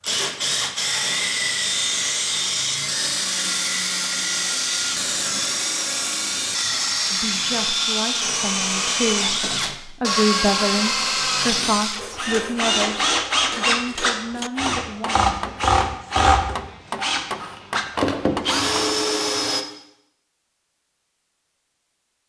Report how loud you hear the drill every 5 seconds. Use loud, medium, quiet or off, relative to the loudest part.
loud, loud, loud, loud, off.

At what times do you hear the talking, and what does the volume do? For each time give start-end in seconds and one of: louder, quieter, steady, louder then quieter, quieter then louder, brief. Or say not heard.
7.1-15.3 louder then quieter.